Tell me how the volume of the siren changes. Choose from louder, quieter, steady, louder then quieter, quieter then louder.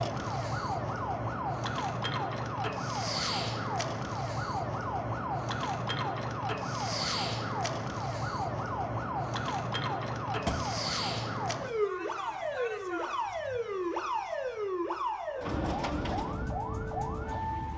steady.